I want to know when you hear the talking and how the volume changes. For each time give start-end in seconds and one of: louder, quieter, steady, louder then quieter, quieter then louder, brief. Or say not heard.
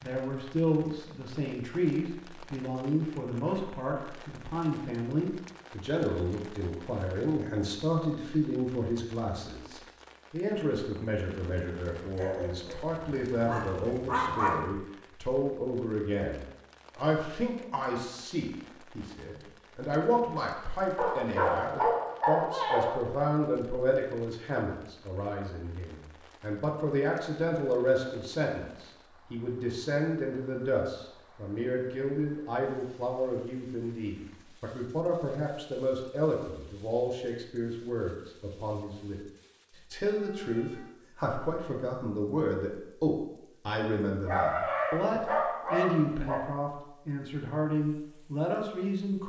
0.0-39.2 steady
39.9-49.2 steady.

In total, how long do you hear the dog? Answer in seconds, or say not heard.
7 s.